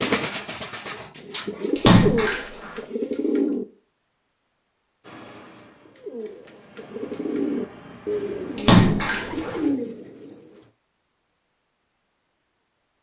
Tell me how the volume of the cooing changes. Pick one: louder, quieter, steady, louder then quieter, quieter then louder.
steady.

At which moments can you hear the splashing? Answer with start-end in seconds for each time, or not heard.
1.8-2.8, 8.6-9.6.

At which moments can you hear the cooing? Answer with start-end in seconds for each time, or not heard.
0.0-3.6, 5.8-10.7.